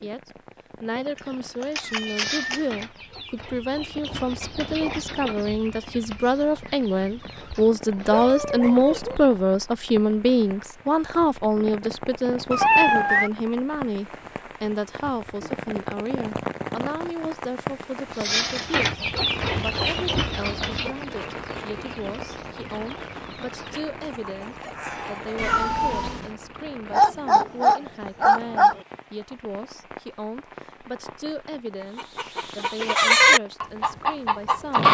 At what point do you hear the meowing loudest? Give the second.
13 s.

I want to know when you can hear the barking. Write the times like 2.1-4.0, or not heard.
7.0-9.2, 26.9-28.8.